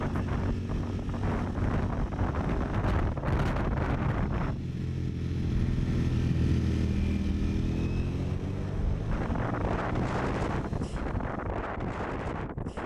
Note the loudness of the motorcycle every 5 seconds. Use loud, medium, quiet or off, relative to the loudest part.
medium, loud, medium.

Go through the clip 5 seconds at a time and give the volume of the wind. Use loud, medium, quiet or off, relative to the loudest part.
loud, medium, loud.